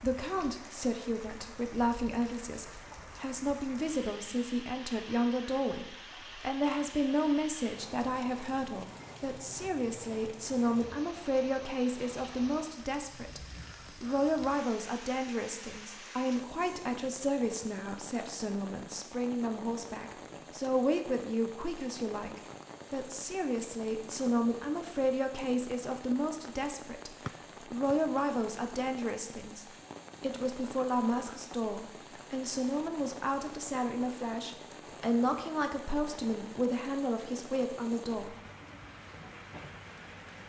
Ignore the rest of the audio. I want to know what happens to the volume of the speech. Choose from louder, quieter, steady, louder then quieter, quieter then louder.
steady.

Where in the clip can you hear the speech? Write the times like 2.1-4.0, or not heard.
0.0-38.4.